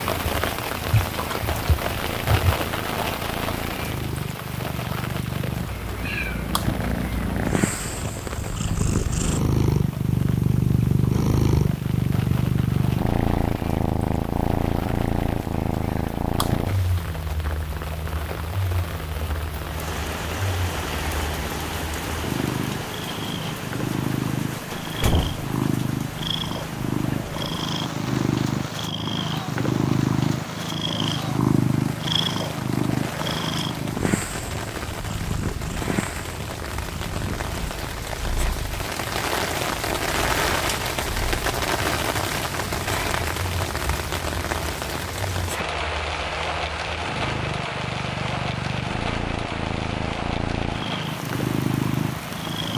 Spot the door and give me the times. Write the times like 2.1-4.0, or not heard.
24.7-25.4.